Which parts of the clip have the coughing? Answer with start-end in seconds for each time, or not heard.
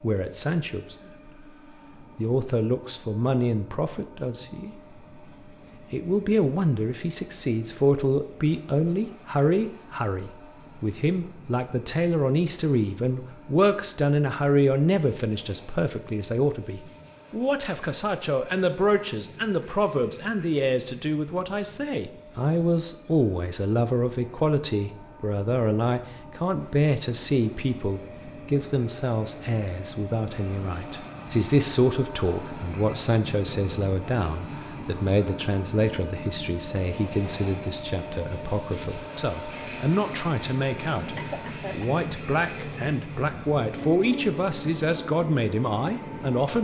41.1-42.0.